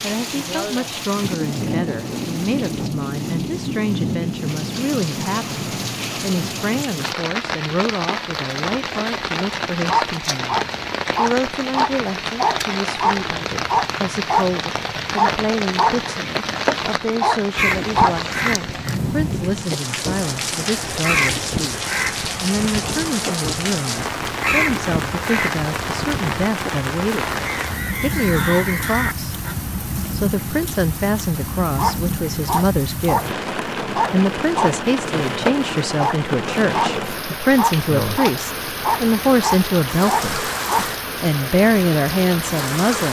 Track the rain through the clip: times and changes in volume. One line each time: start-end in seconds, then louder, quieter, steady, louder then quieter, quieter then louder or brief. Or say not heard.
0.0-43.0 steady.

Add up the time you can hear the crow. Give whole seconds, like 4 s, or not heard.
12 s.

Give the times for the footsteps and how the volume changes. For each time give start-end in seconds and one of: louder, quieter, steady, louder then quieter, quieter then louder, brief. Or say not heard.
not heard.